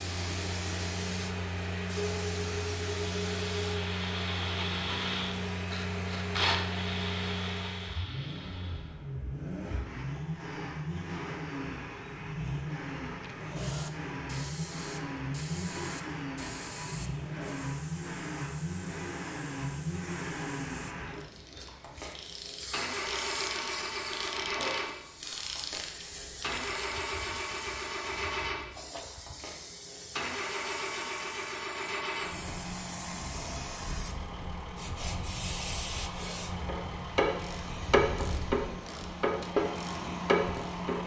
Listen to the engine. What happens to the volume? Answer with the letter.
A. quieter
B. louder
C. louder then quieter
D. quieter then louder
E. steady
E.